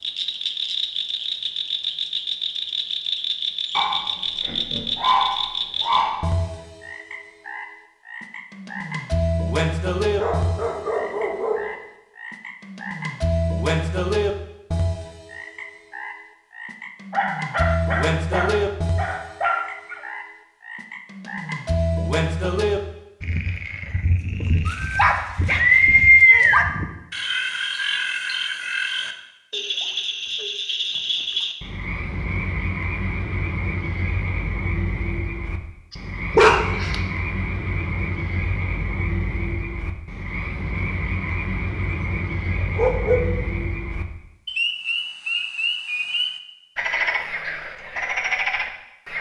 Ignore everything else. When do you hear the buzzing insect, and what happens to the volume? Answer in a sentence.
You can't hear the buzzing insect here.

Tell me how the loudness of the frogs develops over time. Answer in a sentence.
The volume of the frogs stays about the same.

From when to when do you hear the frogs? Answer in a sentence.
You can hear the frogs from 0.0 to 49.1 s.